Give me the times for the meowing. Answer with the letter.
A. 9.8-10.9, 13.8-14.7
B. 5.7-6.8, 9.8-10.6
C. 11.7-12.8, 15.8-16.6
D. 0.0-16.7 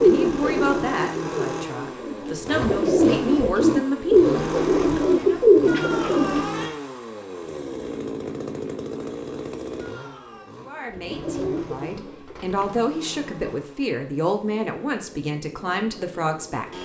B.